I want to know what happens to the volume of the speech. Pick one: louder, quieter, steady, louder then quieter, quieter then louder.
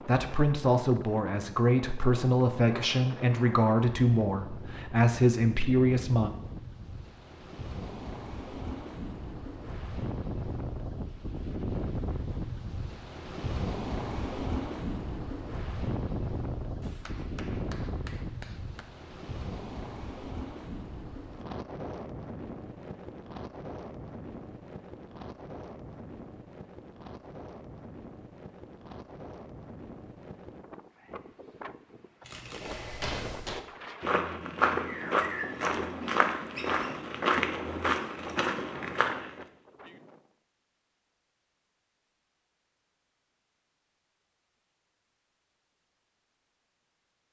steady.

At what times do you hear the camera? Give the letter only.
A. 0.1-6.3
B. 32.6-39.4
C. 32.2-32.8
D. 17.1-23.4
C.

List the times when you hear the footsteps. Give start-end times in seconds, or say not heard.
32.6-39.4.